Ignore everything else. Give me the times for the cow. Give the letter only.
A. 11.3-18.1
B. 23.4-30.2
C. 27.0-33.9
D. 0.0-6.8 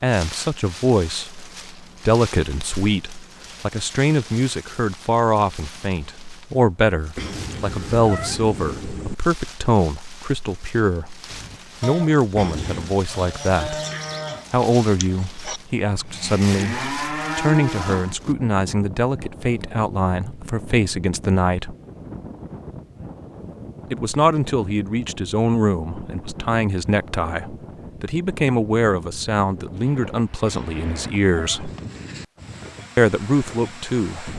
A.